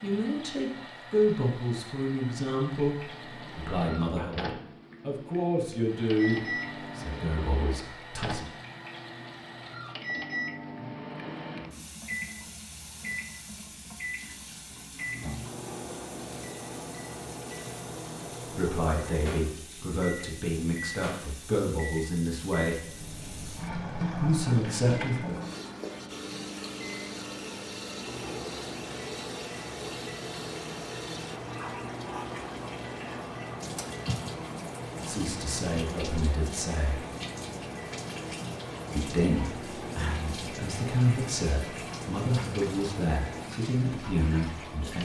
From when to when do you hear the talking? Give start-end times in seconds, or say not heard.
0.0-8.4, 18.4-22.9, 24.1-25.4, 35.0-37.0, 39.0-44.9.